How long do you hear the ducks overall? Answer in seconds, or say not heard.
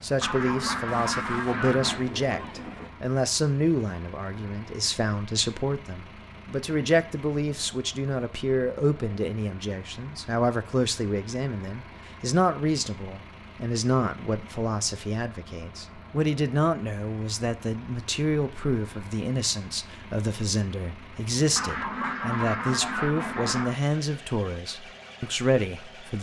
4 s.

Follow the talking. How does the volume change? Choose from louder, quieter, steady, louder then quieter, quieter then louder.
steady.